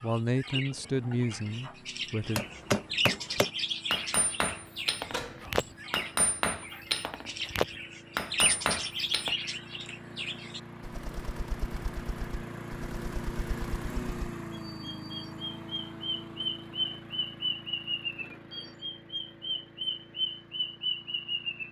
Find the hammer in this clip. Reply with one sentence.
You can hear the hammer from 2.2 to 9.3 s.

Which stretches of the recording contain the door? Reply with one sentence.
The door can be heard from 5.1 to 5.8 s.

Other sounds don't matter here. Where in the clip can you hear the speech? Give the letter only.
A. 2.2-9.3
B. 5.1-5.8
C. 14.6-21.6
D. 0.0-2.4
D.